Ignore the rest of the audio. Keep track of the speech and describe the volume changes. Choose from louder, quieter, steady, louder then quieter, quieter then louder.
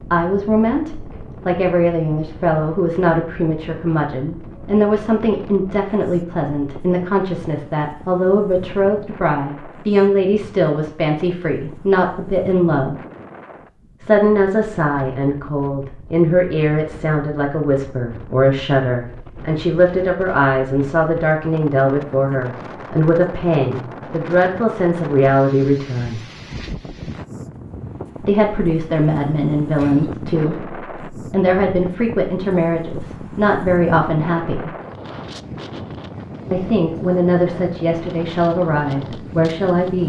steady.